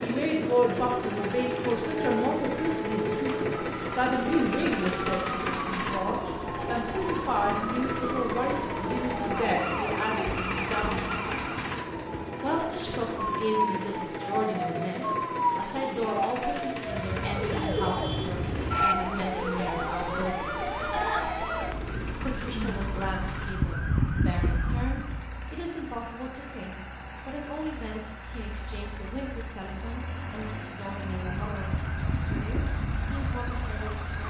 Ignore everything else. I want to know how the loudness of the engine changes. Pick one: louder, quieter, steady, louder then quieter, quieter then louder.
quieter.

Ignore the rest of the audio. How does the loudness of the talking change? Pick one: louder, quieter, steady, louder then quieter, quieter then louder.
quieter.